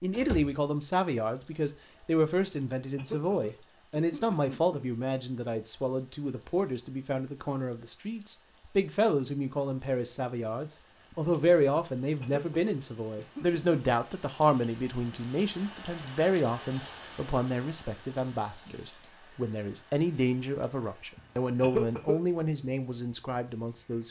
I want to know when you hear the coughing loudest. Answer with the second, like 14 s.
22 s.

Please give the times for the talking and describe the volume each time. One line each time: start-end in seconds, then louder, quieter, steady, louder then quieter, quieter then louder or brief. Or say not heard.
0.0-24.0 steady.